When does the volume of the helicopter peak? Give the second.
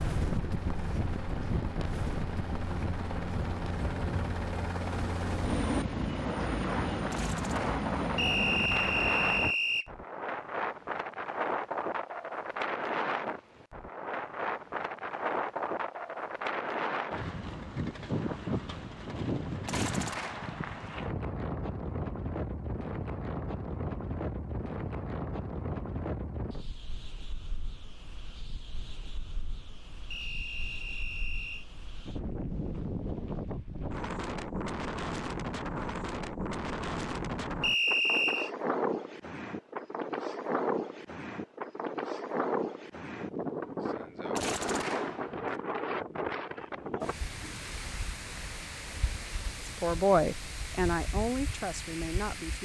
6 s.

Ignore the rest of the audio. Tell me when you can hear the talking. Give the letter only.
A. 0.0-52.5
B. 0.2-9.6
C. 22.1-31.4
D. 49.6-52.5
D.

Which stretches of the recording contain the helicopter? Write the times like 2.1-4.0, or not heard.
0.2-9.6.